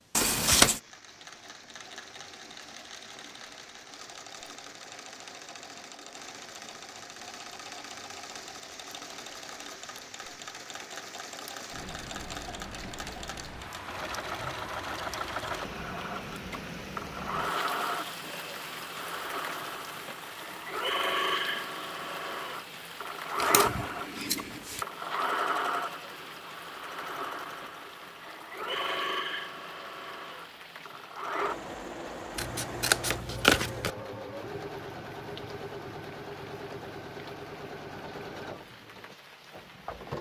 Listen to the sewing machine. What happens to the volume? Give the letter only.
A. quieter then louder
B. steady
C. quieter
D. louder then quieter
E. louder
D.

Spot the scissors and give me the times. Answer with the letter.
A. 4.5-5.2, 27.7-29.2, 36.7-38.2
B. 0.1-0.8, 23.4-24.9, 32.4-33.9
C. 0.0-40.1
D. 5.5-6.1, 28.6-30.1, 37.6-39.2
B.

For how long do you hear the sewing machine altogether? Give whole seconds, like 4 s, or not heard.
40 s.